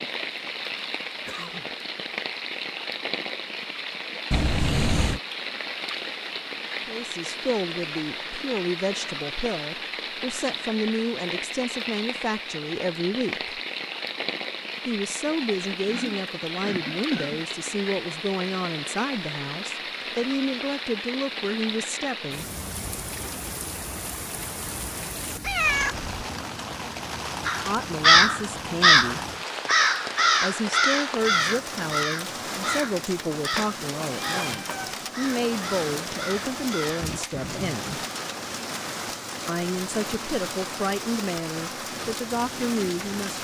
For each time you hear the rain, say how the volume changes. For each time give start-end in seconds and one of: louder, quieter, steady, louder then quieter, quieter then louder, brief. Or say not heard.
0.0-43.4 steady.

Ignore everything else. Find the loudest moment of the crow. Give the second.
28 s.